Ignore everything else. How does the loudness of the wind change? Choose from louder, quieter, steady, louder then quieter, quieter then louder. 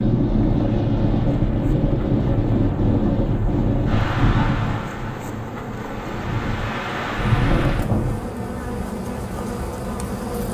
quieter then louder.